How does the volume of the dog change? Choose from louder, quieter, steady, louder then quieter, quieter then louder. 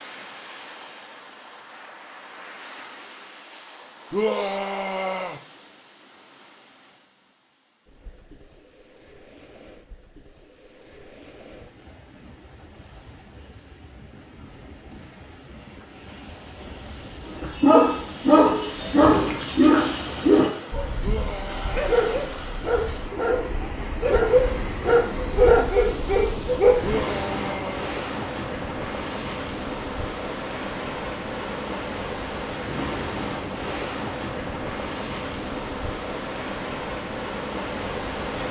quieter then louder.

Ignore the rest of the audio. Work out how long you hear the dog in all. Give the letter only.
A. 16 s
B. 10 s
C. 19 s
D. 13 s
B.